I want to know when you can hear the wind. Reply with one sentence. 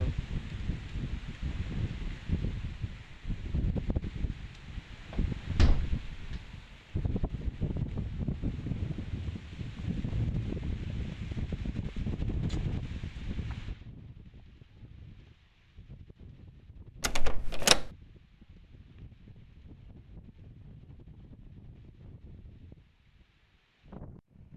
The wind can be heard from 0.0 to 24.5 s.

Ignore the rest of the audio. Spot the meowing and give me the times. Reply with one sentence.
The meowing can't be heard in this clip.